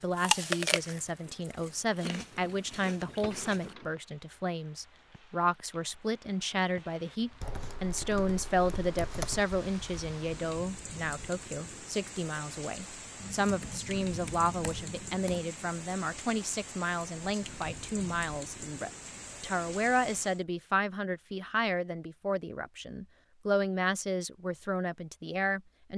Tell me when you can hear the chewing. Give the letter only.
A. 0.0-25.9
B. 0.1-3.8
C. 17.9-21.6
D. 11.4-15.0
B.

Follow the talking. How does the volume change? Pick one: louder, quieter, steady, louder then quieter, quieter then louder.
steady.